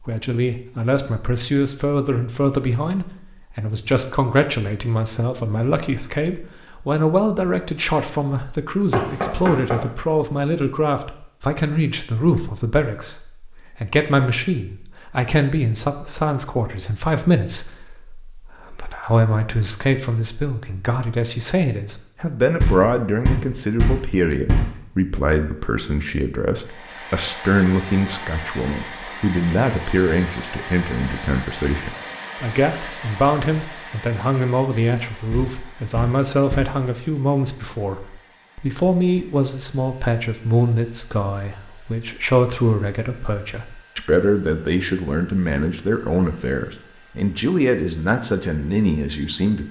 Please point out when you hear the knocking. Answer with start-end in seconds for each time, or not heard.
8.9-9.8, 22.6-24.6, 35.3-36.8.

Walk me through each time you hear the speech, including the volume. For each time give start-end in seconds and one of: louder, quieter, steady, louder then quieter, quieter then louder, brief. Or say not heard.
0.1-49.6 steady.